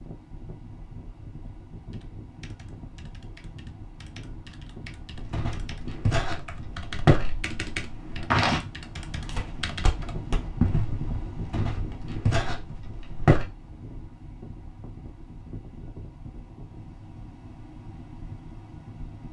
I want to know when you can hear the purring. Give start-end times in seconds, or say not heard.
not heard.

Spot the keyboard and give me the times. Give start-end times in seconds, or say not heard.
1.9-10.2.